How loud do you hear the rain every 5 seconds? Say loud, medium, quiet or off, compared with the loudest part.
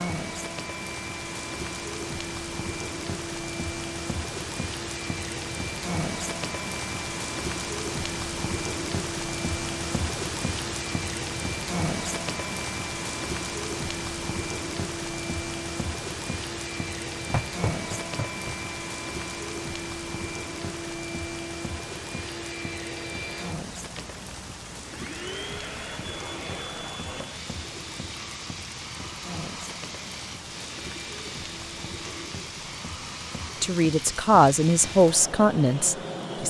loud, loud, loud, loud, medium, medium, medium, medium.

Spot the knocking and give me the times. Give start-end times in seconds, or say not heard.
17.3-18.6.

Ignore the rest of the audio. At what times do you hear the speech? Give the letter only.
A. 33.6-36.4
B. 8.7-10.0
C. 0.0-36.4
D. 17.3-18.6
A.